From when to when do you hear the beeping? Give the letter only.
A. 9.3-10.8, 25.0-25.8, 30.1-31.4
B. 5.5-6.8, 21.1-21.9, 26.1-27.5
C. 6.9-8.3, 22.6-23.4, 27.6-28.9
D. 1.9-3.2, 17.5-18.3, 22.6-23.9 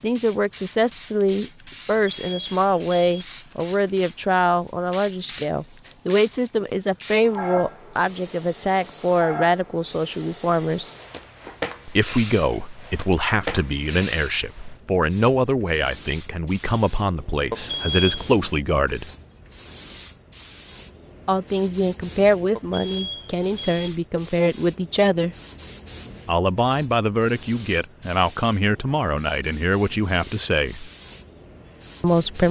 D.